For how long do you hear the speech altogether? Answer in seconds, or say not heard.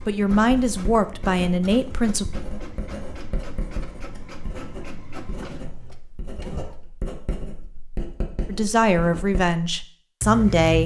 5 s.